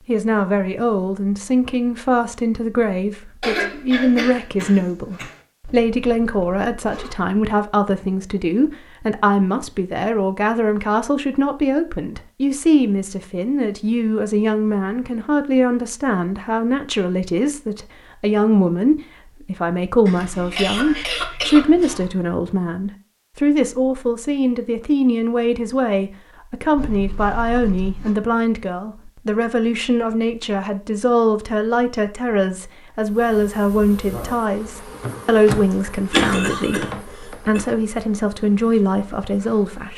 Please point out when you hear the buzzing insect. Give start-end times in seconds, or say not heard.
33.0-39.9.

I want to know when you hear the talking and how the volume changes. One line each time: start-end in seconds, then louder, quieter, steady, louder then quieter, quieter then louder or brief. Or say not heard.
0.1-39.9 steady.